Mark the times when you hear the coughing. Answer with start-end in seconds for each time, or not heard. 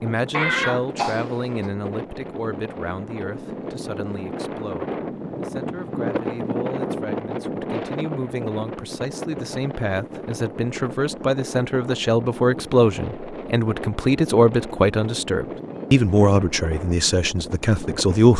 0.3-1.7.